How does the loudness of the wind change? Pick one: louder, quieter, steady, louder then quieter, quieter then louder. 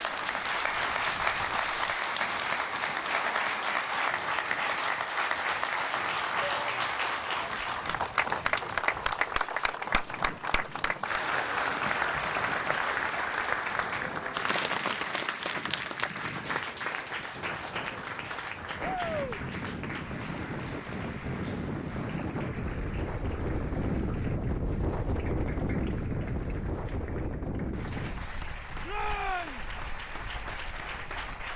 louder.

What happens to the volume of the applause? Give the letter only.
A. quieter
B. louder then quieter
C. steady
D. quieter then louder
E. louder
A.